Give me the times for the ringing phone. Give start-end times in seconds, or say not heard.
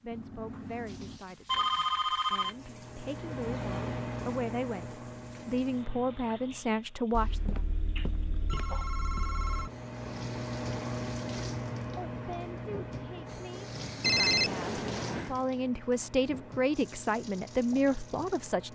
0.1-2.5, 7.1-9.7, 14.0-15.3.